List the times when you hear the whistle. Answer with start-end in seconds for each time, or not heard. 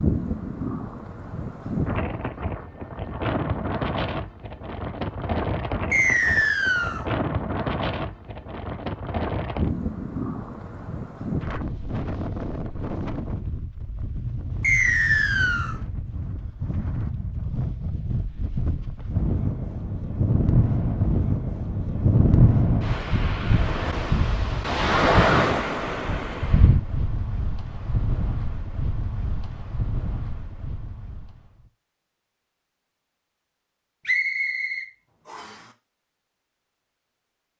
5.9-7.0, 14.6-15.8, 34.0-35.5.